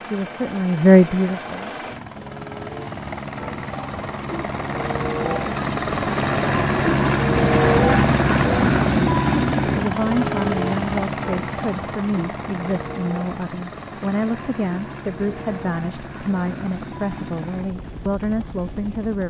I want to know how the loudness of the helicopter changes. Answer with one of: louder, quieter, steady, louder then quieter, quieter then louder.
louder then quieter.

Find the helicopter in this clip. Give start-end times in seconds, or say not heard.
0.0-19.2.